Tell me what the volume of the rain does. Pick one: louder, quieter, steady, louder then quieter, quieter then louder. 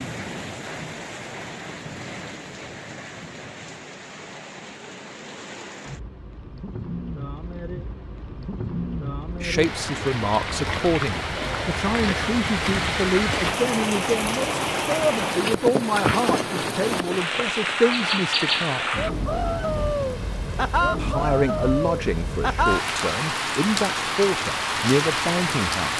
louder.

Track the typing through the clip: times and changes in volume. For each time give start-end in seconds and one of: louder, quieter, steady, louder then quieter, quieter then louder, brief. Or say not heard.
not heard.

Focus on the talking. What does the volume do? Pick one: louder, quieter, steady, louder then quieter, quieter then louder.
steady.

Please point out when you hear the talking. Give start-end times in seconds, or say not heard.
9.4-19.1, 20.9-25.9.